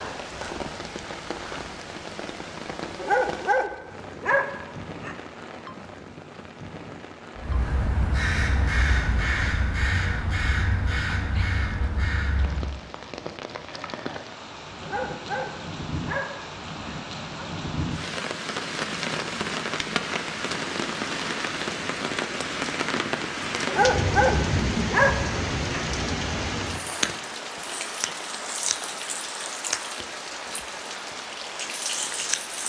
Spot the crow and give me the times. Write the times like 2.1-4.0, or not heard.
7.3-12.8.